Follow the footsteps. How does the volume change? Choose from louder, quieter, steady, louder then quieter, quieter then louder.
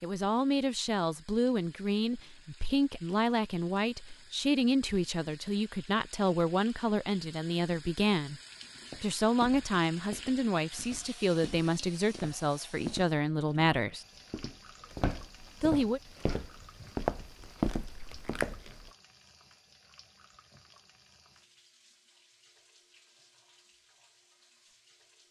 louder.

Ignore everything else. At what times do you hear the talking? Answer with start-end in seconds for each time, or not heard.
0.0-8.4, 9.0-14.1, 15.6-16.0.